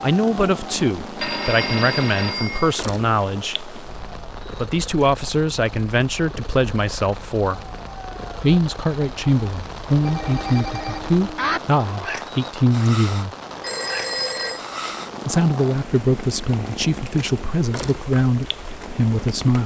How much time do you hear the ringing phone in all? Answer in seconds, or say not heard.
4 s.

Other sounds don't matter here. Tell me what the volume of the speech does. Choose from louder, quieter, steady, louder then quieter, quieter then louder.
steady.